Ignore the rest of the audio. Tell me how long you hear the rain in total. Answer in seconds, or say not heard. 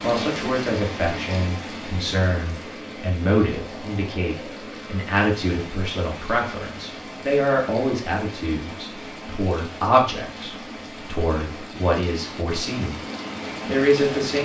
14 s.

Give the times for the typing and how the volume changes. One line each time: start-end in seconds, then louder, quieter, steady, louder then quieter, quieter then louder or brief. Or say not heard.
not heard.